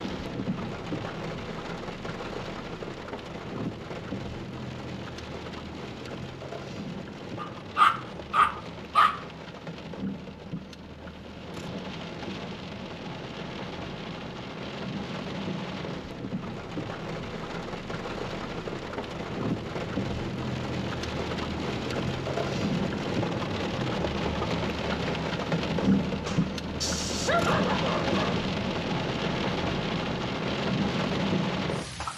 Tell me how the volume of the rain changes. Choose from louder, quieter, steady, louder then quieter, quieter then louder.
louder.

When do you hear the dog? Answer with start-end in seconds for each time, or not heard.
7.4-9.2, 25.8-28.4.